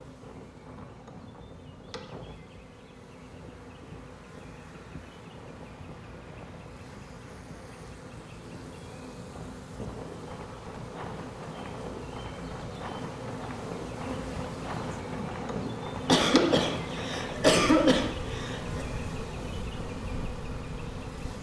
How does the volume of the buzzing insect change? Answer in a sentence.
The loudness of the buzzing insect goes up.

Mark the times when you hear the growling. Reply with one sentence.
You can't hear the growling here.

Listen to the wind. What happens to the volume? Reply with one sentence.
The volume of the wind goes up.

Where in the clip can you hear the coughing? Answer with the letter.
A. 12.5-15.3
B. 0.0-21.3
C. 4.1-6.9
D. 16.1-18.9
D.